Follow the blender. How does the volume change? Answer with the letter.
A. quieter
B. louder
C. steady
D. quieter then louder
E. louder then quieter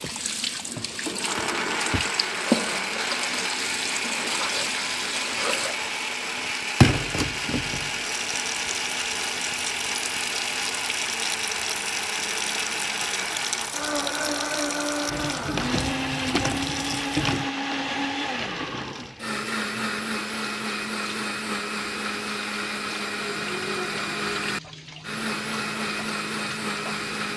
C.